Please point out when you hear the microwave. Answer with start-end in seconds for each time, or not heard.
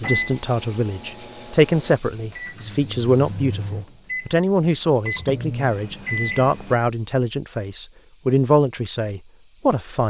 0.0-6.8.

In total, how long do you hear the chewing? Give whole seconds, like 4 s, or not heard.
not heard.